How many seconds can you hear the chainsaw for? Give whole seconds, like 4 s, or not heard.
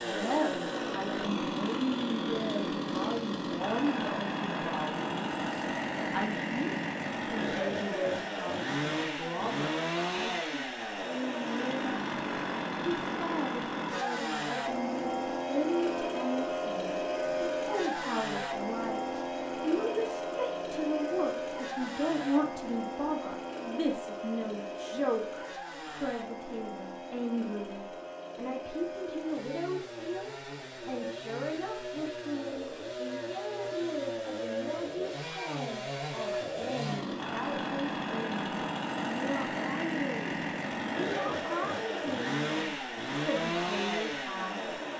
45 s.